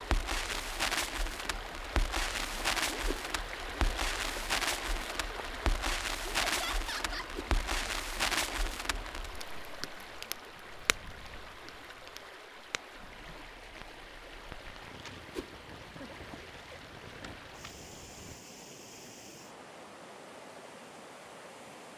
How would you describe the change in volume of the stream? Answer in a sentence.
The volume of the stream goes down.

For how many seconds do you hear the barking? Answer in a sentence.
The barking can't be heard in this clip.